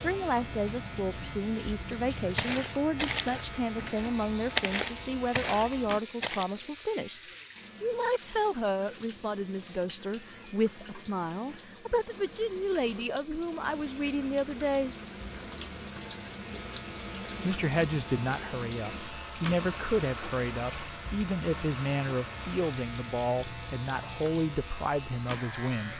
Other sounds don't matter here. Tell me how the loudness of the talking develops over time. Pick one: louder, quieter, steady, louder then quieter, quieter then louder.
steady.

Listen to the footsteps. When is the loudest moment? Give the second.
5 s.